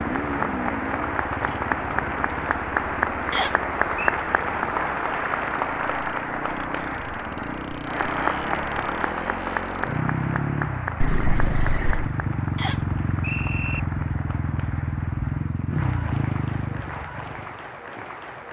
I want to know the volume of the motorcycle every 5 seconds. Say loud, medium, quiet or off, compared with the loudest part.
medium, medium, loud, loud.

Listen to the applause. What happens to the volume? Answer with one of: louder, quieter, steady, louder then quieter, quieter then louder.
quieter.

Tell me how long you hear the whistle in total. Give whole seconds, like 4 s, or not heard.
2 s.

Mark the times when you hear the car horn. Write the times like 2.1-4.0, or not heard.
11.0-12.1.